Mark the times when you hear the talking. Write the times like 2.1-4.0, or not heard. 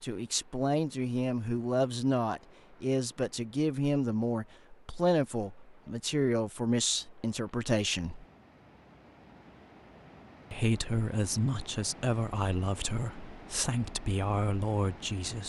0.0-8.2, 10.5-15.4.